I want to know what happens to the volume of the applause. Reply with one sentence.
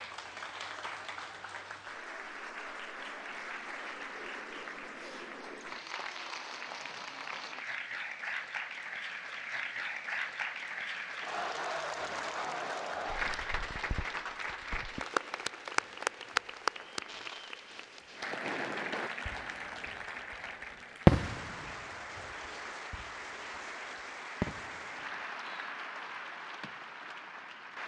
The loudness of the applause goes up, then down.